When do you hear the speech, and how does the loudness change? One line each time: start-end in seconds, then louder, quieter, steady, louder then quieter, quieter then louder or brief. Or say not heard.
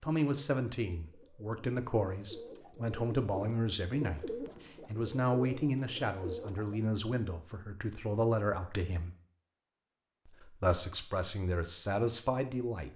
0.0-9.2 steady
10.2-12.9 brief.